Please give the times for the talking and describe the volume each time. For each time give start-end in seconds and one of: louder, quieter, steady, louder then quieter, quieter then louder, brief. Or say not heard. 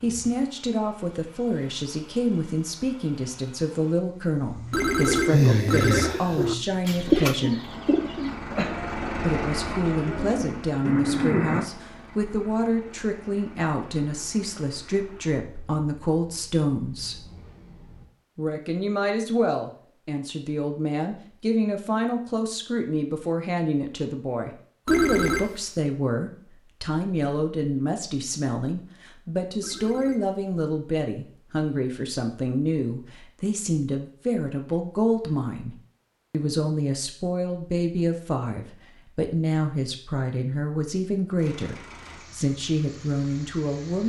0.0-7.7 steady
9.2-17.2 steady
18.4-44.0 steady.